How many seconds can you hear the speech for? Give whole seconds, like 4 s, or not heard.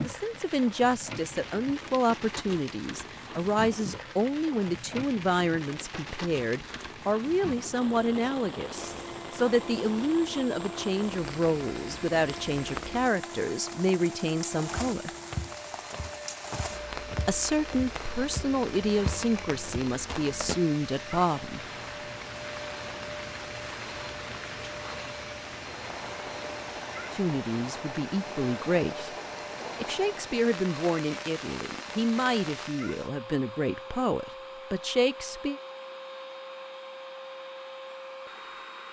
27 s.